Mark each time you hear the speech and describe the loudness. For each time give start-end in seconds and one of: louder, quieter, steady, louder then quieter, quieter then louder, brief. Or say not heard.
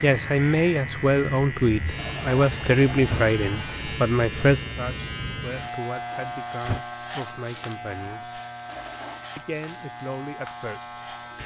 0.0-8.4 quieter
9.3-11.2 brief.